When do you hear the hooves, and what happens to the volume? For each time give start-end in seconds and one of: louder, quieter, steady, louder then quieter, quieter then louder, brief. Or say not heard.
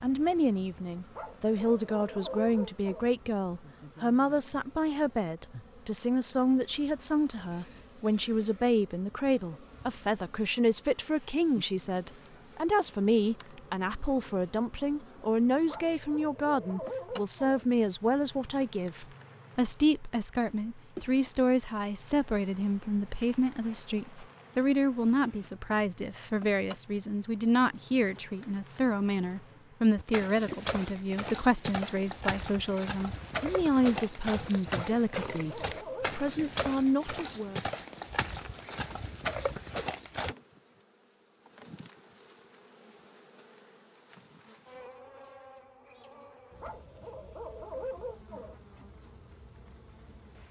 29.9-40.4 steady.